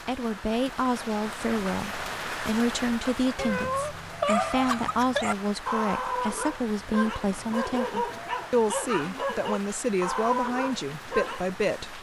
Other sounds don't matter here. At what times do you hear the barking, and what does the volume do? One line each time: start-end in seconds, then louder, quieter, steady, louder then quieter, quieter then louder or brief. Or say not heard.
4.1-11.8 steady.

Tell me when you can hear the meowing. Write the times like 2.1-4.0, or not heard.
3.4-5.3.